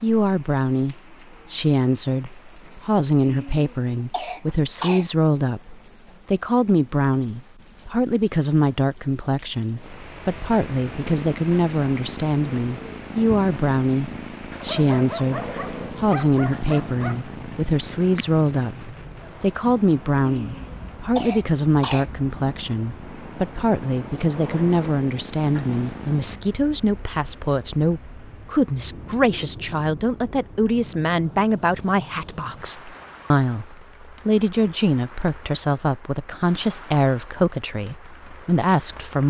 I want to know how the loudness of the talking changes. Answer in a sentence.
The loudness of the talking stays about the same.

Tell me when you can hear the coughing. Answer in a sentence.
You can hear the coughing from 3.2 to 5.0 s and from 20.2 to 22.1 s.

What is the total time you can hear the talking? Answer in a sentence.
You can hear the talking for 39 seconds altogether.